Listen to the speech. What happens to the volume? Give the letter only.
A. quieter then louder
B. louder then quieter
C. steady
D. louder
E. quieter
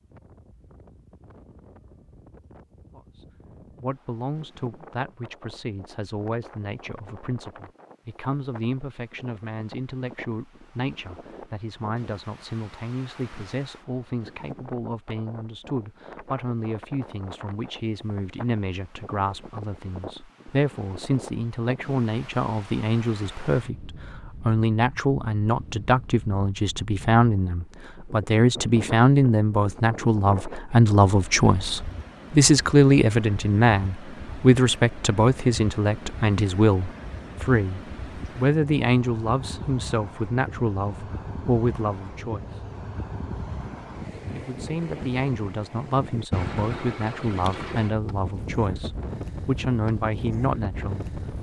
B.